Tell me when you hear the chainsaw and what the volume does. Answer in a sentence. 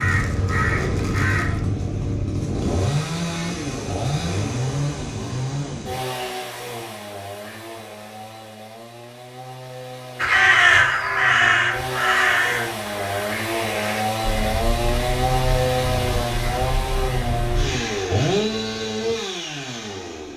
You can hear the chainsaw from 0.0 to 20.3 s, getting quieter then louder.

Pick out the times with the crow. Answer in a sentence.
You can hear the crow from 0.0 to 1.6 s and from 10.2 to 17.8 s.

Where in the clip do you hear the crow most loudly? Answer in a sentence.
The loudest moment of the crow is at 11 seconds.